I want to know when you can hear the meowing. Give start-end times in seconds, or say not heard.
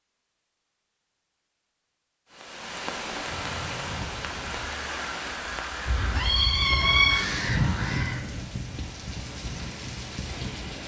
5.8-7.2.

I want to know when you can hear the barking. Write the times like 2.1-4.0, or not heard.
not heard.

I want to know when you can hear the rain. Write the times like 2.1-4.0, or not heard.
2.3-10.8.